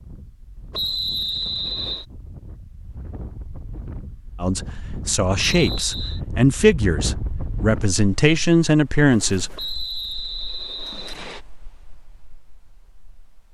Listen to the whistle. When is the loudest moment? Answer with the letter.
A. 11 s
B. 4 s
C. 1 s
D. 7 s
C.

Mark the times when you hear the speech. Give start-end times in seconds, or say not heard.
4.4-9.6.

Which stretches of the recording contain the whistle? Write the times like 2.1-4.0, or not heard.
0.7-2.0, 5.5-6.2, 9.6-11.4.